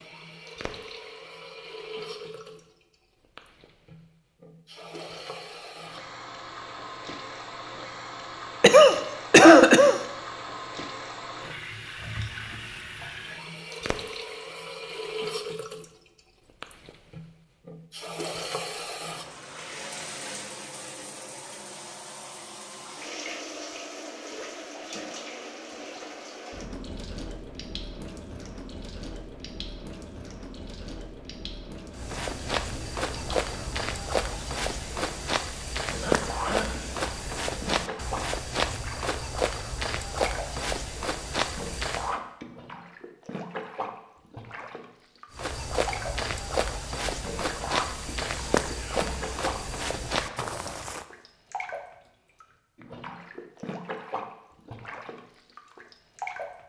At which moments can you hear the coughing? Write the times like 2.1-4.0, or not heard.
8.6-10.0, 36.0-36.8.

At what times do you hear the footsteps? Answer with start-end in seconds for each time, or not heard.
31.9-42.2, 45.4-51.0.